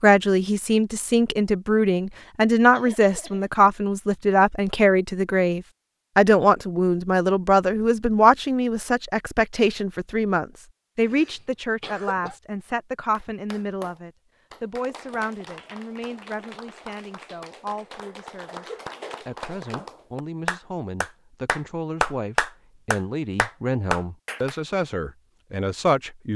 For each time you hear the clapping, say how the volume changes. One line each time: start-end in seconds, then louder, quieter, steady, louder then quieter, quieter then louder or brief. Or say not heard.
13.1-24.6 louder.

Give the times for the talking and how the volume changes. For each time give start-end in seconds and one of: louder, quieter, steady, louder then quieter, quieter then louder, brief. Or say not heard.
0.0-26.3 quieter then louder.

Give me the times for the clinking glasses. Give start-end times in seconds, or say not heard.
not heard.